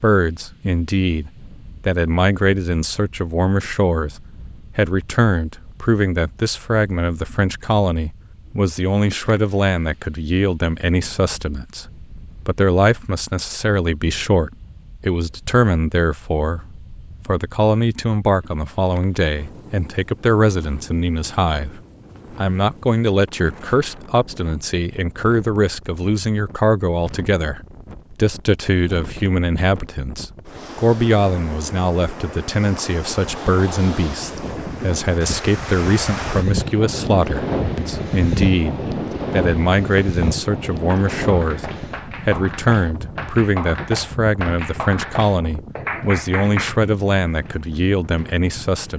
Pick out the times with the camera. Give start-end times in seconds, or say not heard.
not heard.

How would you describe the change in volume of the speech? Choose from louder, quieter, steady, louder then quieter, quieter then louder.
steady.